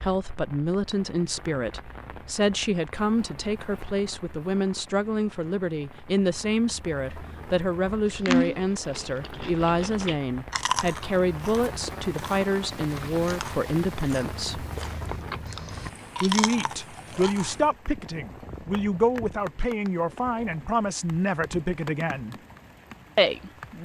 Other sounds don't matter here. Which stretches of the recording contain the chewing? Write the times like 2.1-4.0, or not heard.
8.2-17.7.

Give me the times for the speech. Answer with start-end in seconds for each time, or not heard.
0.0-14.7, 16.2-22.4, 23.1-23.8.